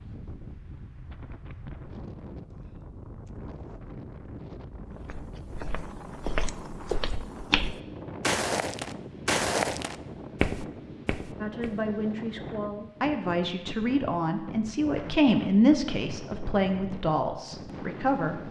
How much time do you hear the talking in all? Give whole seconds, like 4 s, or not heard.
7 s.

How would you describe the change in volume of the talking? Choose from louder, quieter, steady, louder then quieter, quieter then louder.
louder then quieter.